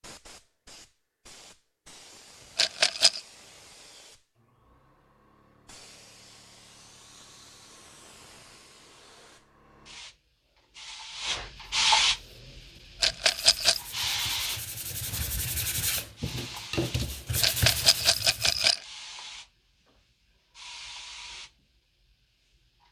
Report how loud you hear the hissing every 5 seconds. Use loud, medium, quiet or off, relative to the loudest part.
quiet, quiet, loud, quiet, quiet.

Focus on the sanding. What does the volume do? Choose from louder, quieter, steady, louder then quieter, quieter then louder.
louder.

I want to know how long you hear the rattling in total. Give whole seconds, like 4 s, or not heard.
3 s.